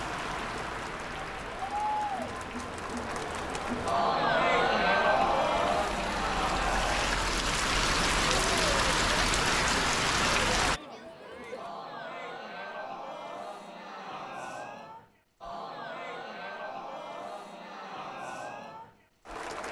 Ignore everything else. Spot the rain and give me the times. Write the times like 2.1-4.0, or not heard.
0.0-10.8.